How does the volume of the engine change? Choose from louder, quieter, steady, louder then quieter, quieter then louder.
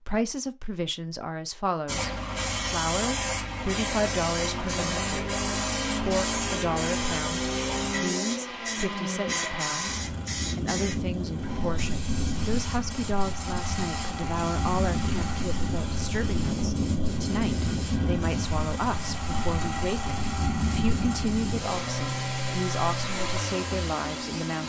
steady.